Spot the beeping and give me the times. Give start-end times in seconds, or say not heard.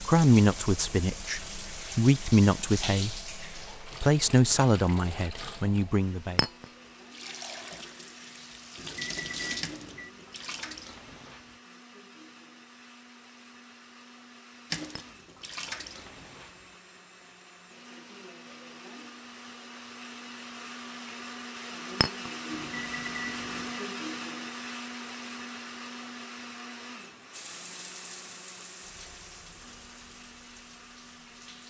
8.8-10.1, 22.5-23.9.